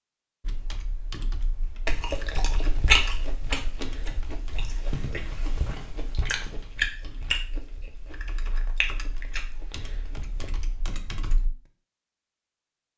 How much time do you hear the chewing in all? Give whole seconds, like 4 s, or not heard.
9 s.